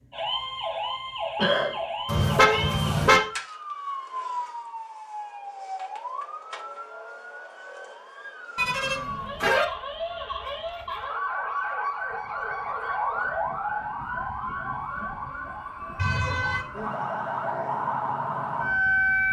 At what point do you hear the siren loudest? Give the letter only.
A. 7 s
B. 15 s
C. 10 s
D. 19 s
D.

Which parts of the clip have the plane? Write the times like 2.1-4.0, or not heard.
not heard.